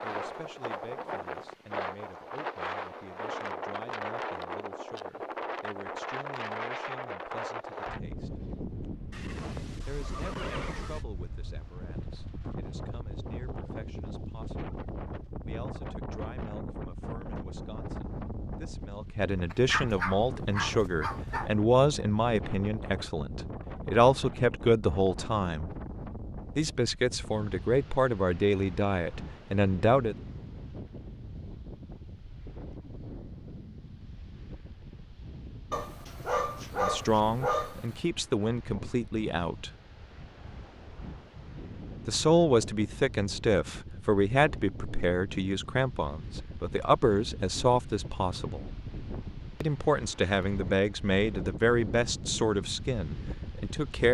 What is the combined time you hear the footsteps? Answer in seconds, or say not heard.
not heard.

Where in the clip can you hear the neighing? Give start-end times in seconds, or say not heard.
9.1-11.1.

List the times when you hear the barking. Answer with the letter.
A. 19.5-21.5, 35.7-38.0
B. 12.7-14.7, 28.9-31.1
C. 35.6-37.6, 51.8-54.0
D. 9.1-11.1
A.